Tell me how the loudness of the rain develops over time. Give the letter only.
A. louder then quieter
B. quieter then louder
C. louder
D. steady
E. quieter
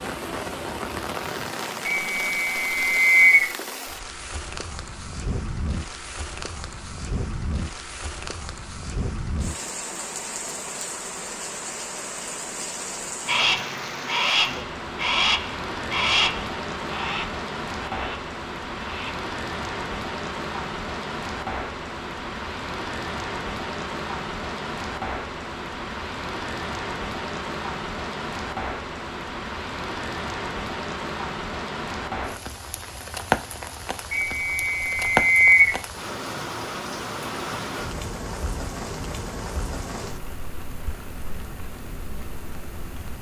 D.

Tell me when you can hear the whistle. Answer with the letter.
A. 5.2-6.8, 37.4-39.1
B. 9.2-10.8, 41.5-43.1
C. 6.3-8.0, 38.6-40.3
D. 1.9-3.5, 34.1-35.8
D.